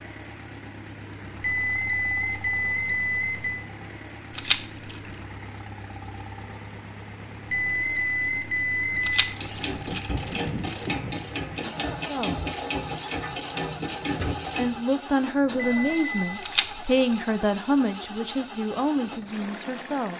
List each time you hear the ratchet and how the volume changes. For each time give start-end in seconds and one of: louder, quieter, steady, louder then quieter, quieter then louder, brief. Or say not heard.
9.3-14.8 steady.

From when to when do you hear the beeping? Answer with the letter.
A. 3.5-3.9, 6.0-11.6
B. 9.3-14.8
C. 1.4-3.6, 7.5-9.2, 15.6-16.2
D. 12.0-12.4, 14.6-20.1
C.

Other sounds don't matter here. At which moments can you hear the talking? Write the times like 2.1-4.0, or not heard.
12.0-12.4, 14.6-20.1.